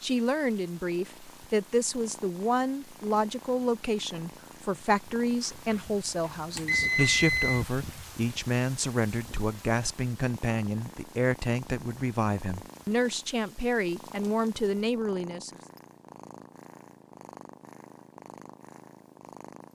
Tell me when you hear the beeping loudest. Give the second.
7 s.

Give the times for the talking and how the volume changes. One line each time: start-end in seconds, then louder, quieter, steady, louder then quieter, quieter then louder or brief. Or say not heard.
0.0-15.5 steady.